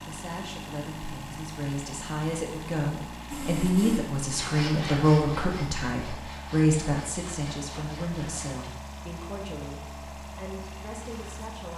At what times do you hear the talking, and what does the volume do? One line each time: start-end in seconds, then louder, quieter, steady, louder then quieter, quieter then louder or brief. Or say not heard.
0.1-11.7 louder then quieter.